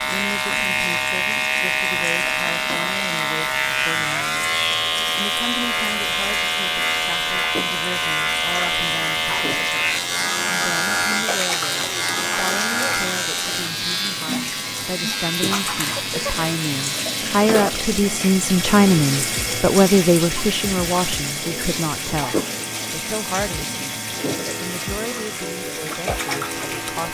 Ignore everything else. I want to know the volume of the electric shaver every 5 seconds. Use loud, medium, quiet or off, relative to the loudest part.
loud, loud, loud, medium, quiet, medium.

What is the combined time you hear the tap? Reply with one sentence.
The tap can be heard for 27 seconds in total.